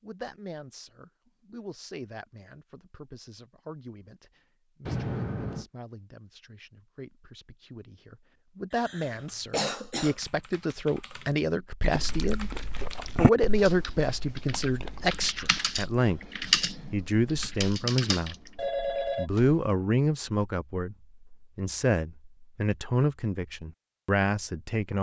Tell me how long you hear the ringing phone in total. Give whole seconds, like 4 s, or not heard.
2 s.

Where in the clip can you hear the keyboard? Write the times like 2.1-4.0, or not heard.
9.1-19.0.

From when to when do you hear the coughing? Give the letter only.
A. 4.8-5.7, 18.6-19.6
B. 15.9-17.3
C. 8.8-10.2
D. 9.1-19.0
C.